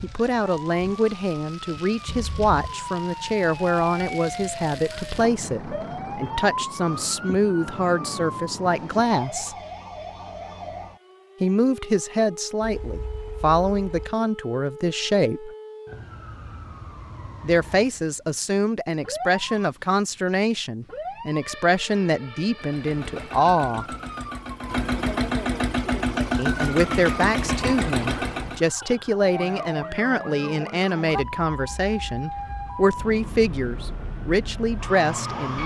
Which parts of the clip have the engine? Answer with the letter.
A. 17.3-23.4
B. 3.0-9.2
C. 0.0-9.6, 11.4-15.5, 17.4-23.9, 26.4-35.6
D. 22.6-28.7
D.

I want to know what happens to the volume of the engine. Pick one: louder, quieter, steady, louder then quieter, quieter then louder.
louder.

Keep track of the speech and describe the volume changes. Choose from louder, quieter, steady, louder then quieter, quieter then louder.
steady.